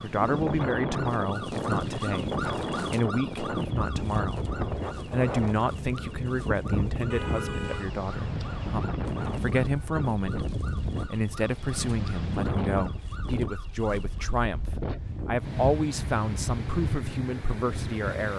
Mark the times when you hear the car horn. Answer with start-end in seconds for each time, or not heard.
7.1-7.9.